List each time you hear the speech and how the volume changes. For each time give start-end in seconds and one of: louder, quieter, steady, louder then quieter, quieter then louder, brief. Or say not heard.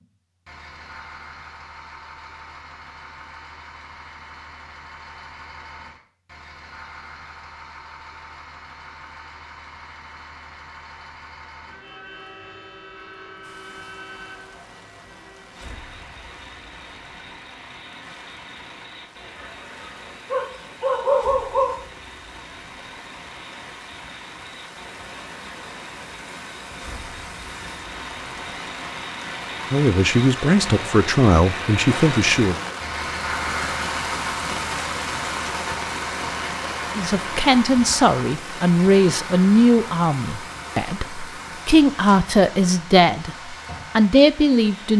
29.7-32.6 brief
37.0-44.9 quieter then louder.